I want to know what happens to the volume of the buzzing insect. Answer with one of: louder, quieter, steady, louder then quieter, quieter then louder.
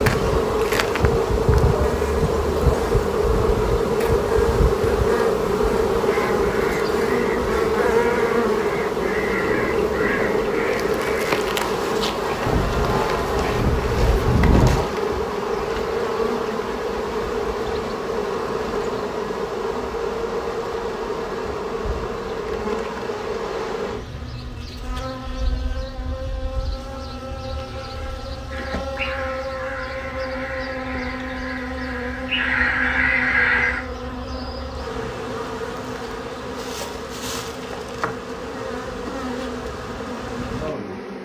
quieter.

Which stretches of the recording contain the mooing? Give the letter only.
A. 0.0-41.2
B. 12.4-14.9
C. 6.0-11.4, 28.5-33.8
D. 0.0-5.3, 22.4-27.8
B.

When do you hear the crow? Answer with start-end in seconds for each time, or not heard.
6.0-11.4, 28.5-33.8.